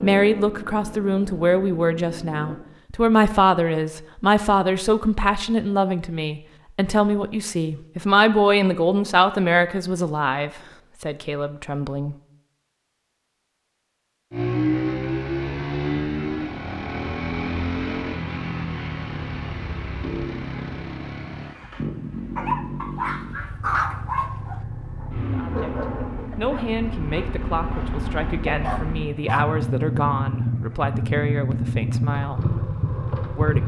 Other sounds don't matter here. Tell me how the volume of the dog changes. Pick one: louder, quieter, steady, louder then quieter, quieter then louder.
quieter then louder.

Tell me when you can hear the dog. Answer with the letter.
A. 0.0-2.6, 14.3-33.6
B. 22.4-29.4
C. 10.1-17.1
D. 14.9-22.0
B.